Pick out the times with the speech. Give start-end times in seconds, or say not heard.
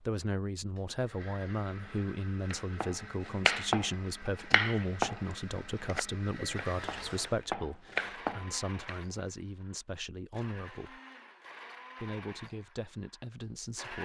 0.1-11.0, 12.0-14.0.